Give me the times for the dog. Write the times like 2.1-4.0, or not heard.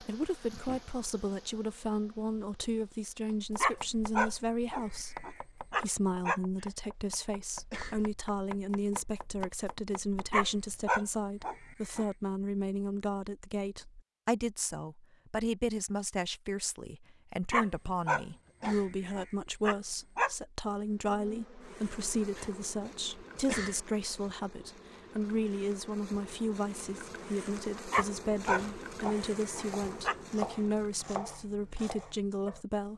3.6-6.4, 10.3-12.1, 17.5-20.3, 27.9-30.1.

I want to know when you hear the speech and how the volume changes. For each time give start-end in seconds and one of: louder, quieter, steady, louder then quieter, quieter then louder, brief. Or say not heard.
0.0-32.9 steady.